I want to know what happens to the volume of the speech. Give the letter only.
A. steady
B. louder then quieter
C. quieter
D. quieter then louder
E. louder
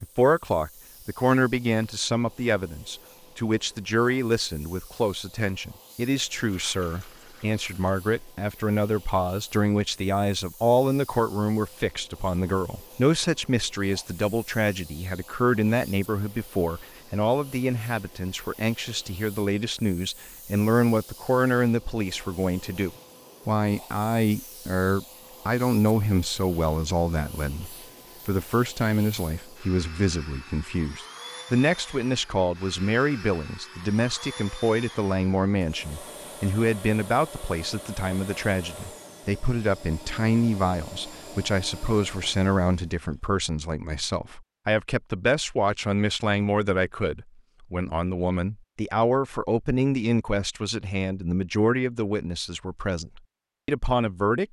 A.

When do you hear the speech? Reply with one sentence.
You can hear the speech from 0.0 to 54.4 s.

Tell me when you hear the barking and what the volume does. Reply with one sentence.
You can't hear the barking here.